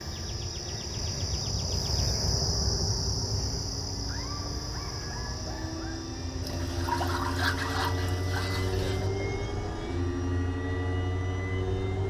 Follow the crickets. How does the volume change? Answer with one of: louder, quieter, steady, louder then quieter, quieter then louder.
quieter.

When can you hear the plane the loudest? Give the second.
9 s.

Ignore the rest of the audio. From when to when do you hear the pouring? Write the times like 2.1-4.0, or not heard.
6.4-9.1.